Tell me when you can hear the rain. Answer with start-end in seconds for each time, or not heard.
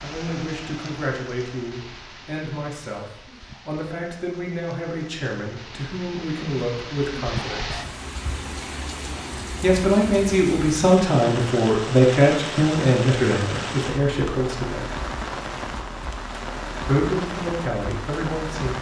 0.0-18.7.